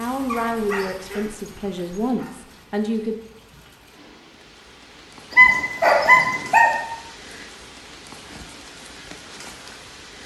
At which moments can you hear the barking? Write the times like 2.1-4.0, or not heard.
0.2-2.2, 5.3-6.7.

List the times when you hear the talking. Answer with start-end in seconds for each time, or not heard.
0.0-3.1.